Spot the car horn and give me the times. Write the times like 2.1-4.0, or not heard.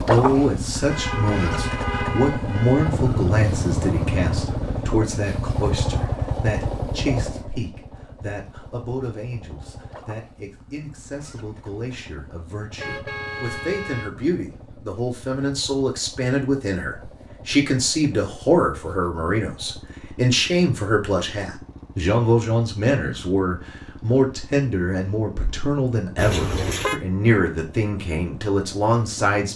0.8-2.9, 12.8-14.1, 26.1-27.0.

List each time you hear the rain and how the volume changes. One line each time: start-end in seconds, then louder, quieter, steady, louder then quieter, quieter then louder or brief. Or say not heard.
not heard.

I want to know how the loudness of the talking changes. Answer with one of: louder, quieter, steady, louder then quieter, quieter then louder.
quieter then louder.